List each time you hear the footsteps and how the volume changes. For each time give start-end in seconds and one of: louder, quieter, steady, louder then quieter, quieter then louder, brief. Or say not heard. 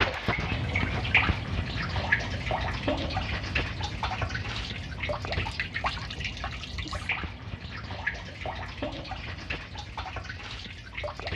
not heard.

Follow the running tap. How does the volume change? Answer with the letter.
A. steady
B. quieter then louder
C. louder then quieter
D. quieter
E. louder
D.